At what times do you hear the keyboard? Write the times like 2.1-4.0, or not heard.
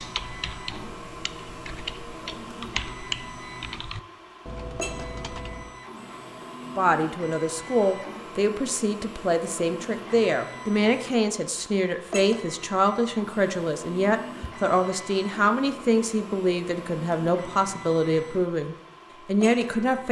0.0-5.8.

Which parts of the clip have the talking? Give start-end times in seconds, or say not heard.
6.8-20.0.